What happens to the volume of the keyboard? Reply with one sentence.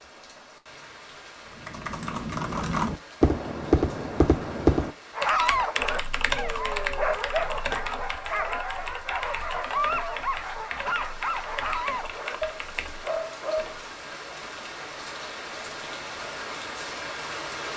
The loudness of the keyboard goes down.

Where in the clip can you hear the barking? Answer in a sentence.
The barking can be heard from 5.2 to 13.8 s.